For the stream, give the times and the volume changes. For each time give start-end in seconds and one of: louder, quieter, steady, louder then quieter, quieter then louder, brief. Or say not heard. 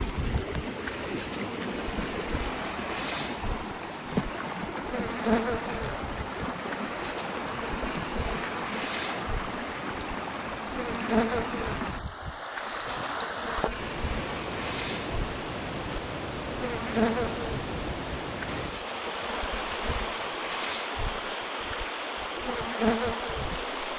0.0-23.9 steady.